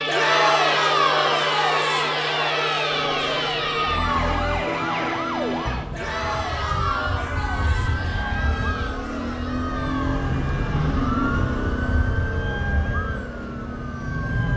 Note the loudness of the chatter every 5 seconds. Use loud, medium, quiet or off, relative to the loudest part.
loud, medium, quiet.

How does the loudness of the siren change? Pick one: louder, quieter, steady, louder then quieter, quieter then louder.
quieter.